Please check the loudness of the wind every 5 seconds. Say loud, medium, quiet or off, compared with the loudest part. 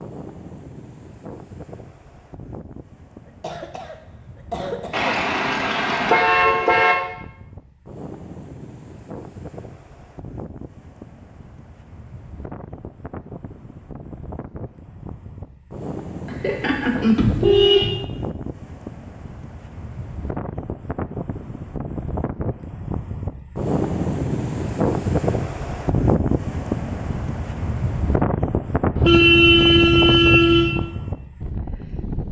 quiet, quiet, quiet, medium, loud, loud, medium.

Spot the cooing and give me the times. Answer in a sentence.
The cooing can't be heard in this clip.